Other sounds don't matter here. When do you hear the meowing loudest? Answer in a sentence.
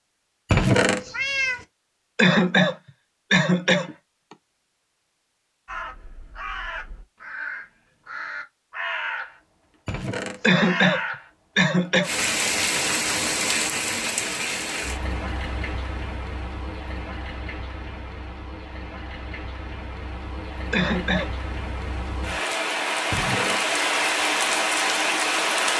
The volume of the meowing peaks at 1 second.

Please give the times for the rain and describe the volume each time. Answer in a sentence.
You can hear the rain from 12.0 to 25.7 s, getting quieter then louder.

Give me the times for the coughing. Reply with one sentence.
The coughing can be heard from 2.1 to 3.9 s, from 10.4 to 12.1 s and from 20.7 to 21.3 s.